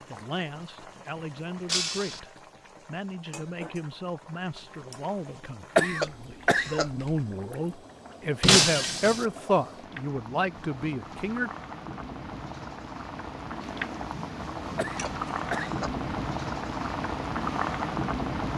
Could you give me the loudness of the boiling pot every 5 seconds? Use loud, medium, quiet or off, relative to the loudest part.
quiet, quiet, medium, loud.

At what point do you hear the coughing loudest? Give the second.
6 s.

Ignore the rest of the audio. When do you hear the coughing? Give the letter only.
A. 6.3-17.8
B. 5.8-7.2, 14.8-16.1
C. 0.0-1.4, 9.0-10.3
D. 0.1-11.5
B.